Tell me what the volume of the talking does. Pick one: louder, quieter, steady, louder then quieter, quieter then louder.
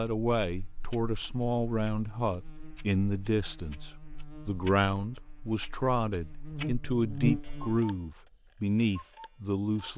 steady.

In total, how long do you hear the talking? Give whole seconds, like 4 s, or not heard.
10 s.